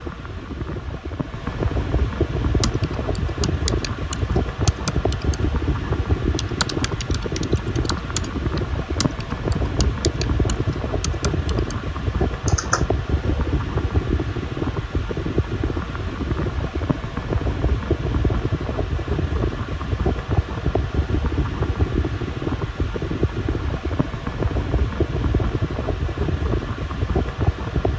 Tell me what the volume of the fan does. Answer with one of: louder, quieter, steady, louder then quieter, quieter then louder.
steady.